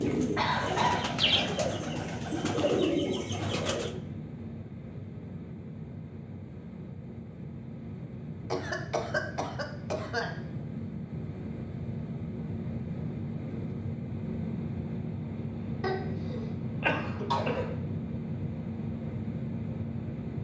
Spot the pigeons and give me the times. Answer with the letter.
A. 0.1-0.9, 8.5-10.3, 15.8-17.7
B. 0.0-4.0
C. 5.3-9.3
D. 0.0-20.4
B.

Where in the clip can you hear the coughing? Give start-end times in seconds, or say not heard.
0.1-0.9, 8.5-10.3, 15.8-17.7.